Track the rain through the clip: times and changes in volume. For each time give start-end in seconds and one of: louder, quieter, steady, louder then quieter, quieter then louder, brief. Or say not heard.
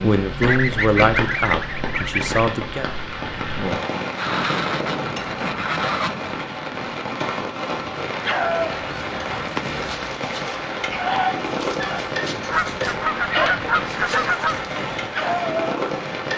0.0-16.3 steady.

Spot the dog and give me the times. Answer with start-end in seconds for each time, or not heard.
8.2-15.8.